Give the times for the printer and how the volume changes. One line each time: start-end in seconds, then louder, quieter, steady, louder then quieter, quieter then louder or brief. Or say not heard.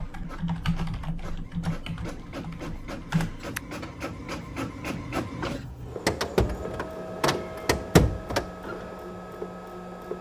0.0-10.1 louder.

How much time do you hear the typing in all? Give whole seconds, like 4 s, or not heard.
4 s.